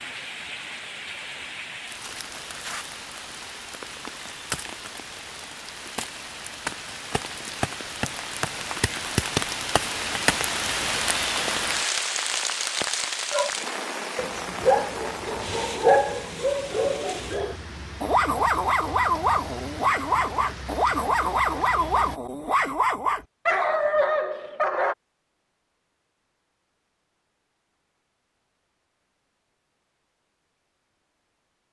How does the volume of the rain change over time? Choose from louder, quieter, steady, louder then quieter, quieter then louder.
louder then quieter.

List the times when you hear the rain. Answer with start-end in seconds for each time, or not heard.
0.0-22.2.